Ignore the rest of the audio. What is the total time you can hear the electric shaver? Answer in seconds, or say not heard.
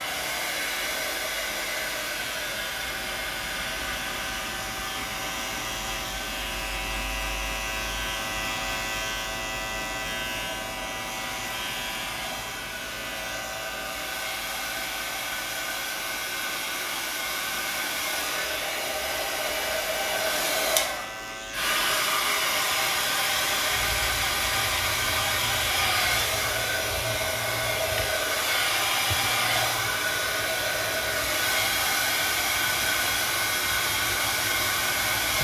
35 s.